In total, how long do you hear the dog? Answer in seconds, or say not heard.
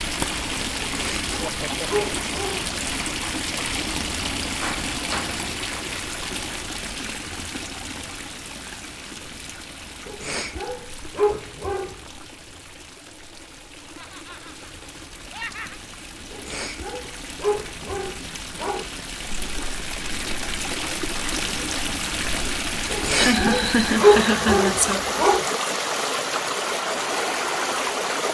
9 s.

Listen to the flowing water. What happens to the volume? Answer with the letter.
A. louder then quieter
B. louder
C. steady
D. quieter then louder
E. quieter
D.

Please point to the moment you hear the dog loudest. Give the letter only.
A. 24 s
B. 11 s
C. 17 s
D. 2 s
A.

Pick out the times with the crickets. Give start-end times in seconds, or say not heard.
not heard.